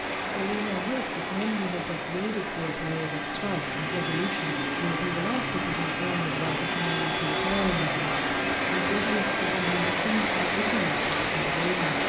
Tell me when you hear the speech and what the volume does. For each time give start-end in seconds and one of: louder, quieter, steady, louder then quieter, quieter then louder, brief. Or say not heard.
0.3-12.0 steady.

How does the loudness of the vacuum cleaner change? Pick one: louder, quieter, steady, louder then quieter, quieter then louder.
louder.